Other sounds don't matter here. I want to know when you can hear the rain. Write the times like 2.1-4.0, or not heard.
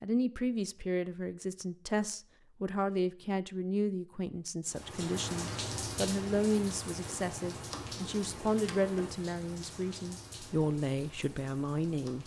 4.7-12.2.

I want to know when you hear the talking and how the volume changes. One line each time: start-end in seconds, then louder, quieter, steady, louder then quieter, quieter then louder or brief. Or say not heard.
0.0-12.2 steady.